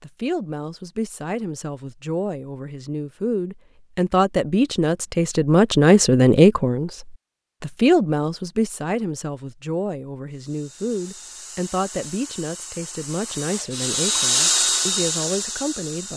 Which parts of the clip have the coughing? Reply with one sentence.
The coughing can't be heard in this clip.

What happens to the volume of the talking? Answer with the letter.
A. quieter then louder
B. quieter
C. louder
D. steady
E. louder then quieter
E.